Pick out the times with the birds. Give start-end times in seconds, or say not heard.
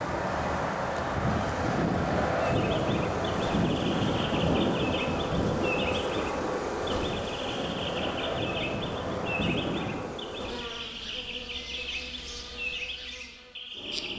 2.4-14.1.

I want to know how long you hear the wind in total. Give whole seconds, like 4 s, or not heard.
10 s.